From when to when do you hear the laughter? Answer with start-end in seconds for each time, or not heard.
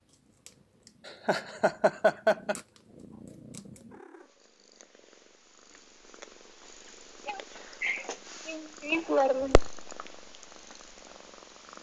1.1-2.5, 7.2-9.7.